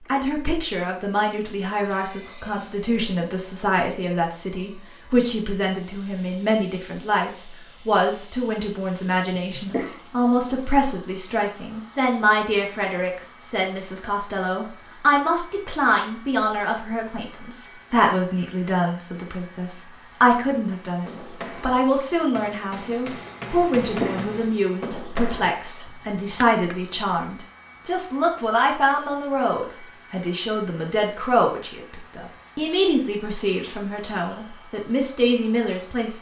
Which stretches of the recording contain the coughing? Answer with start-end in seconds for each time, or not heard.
9.3-10.0, 23.6-24.2.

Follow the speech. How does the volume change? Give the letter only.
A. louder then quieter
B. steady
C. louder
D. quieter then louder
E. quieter
B.